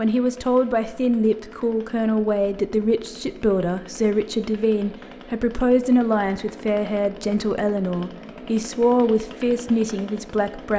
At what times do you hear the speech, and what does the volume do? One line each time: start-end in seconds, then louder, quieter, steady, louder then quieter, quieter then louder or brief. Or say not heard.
0.0-10.7 steady.